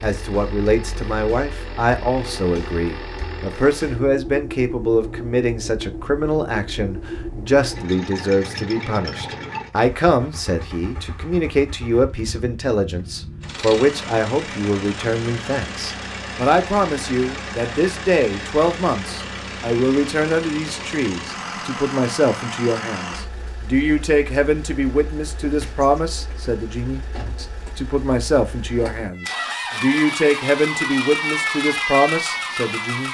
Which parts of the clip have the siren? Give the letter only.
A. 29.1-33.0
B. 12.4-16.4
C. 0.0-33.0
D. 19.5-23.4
A.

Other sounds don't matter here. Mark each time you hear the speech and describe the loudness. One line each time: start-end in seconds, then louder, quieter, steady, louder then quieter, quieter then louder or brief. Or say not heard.
0.0-33.0 steady.